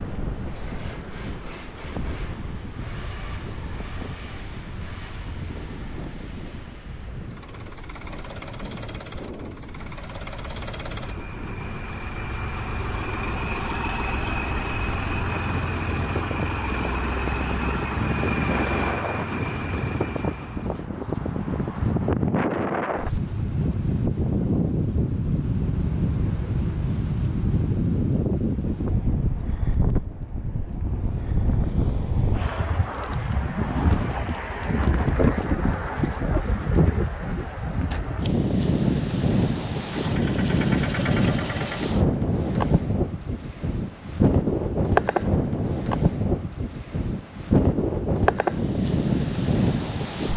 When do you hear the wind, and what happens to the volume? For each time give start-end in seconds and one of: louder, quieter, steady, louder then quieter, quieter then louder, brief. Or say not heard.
0.0-50.3 louder.